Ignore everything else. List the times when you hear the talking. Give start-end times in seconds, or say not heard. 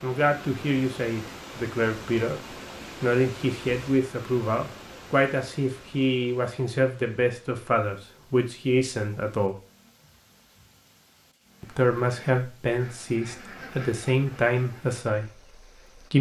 0.0-9.6, 11.6-16.1.